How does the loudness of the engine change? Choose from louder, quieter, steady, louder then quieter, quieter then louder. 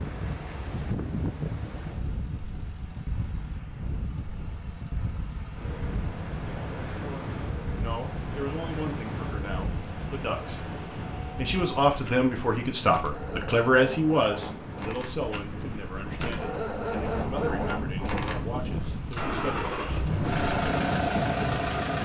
louder.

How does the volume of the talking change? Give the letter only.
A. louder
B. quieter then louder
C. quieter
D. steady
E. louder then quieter
E.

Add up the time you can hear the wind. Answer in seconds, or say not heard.
22 s.